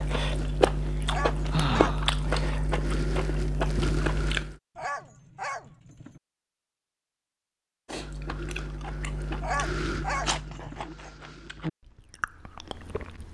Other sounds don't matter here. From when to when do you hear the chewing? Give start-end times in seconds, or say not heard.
0.0-4.5, 7.8-13.2.